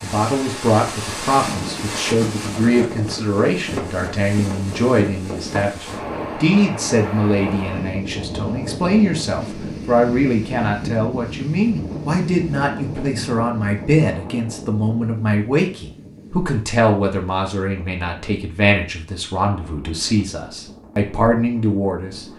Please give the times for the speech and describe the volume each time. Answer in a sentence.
The speech can be heard from 0.0 to 22.2 s, at a steady volume.